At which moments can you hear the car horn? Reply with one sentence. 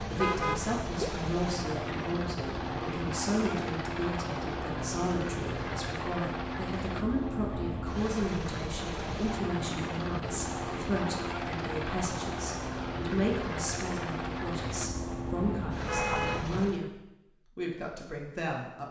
You can hear the car horn from 0.1 to 1.1 s and from 15.8 to 16.8 s.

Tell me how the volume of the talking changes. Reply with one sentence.
The volume of the talking stays about the same.